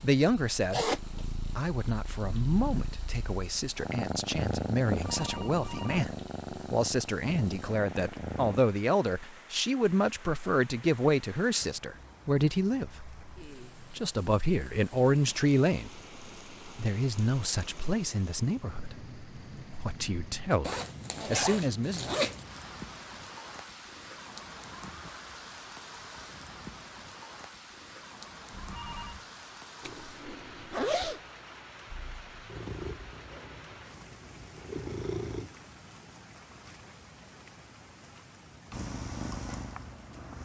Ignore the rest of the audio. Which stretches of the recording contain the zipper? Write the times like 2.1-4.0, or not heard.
0.7-1.2, 20.6-22.4, 29.8-31.2.